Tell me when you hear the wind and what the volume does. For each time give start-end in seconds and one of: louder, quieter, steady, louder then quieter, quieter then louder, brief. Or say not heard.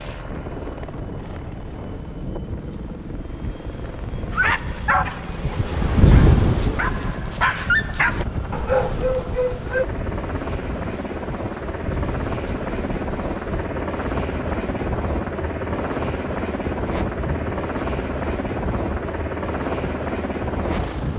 0.0-21.1 louder then quieter.